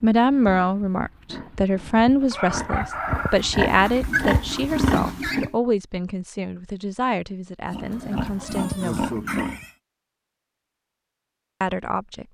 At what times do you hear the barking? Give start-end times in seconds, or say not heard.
not heard.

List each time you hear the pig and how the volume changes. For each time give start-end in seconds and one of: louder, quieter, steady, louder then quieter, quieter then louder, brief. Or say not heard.
0.1-5.5 louder
7.7-9.8 brief.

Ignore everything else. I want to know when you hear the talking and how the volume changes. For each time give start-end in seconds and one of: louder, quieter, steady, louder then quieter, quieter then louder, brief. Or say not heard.
0.0-9.1 quieter
11.6-12.2 brief.